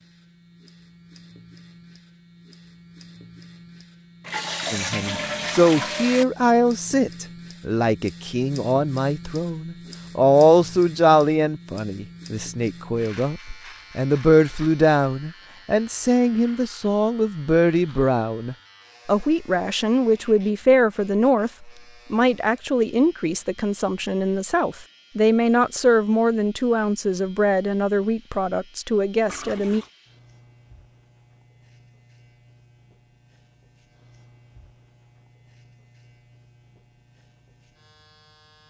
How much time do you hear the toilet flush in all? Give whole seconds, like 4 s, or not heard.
3 s.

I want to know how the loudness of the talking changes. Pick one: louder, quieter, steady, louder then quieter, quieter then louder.
steady.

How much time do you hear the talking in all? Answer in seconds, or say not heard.
25 s.